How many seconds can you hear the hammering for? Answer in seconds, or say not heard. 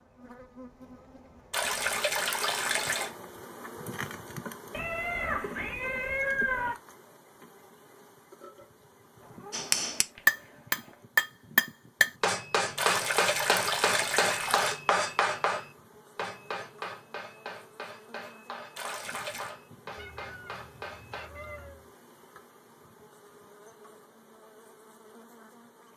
12 s.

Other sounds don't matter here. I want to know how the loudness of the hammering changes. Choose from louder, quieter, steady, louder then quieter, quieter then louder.
quieter.